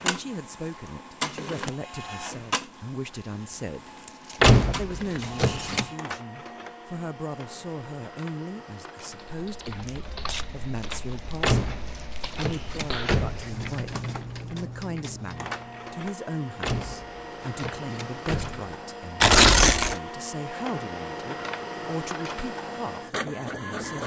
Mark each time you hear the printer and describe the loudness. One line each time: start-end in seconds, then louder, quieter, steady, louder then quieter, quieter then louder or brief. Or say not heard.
0.0-24.0 quieter then louder.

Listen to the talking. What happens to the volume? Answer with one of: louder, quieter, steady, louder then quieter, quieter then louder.
steady.